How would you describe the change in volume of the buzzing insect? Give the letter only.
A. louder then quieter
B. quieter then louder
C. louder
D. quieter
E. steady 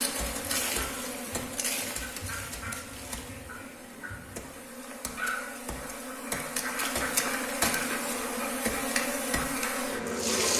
B.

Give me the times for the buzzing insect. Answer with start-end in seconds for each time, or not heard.
0.0-10.5.